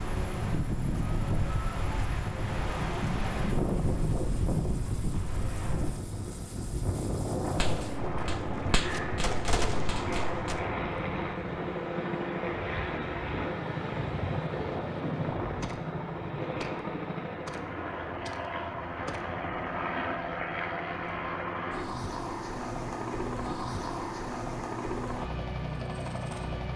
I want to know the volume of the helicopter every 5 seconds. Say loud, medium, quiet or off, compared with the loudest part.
quiet, medium, loud, loud, loud, loud.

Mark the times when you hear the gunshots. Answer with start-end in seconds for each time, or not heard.
7.5-10.7, 15.4-19.2.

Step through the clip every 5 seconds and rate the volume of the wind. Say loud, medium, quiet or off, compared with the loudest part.
loud, loud, medium, off, off, off.